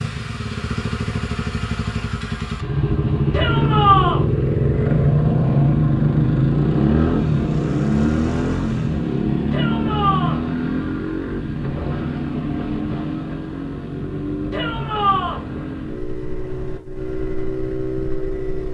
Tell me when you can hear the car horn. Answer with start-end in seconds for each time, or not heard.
not heard.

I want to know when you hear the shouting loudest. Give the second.
4 s.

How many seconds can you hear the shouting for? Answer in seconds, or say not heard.
3 s.